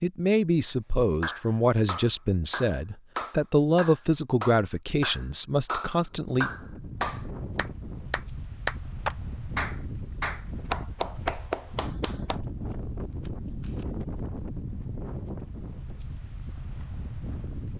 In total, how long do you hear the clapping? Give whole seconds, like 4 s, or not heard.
11 s.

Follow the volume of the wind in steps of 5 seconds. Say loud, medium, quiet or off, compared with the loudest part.
off, loud, loud, loud.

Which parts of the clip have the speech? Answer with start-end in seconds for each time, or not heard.
0.0-6.5.